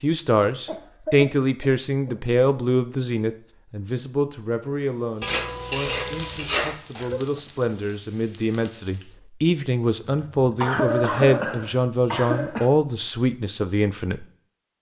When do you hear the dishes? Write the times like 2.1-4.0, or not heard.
5.2-6.8.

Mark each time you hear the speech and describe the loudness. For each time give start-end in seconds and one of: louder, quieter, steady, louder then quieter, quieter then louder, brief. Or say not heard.
0.0-14.2 quieter then louder.